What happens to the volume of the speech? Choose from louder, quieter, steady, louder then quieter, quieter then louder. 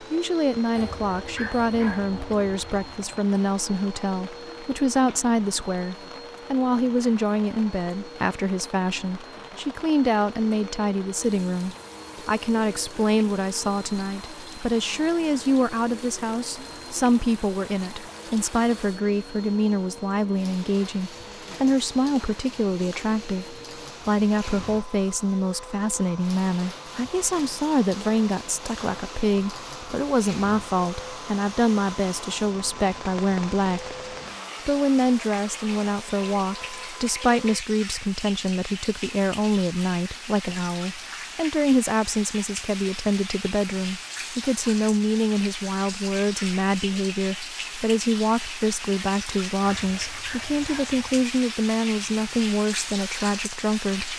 steady.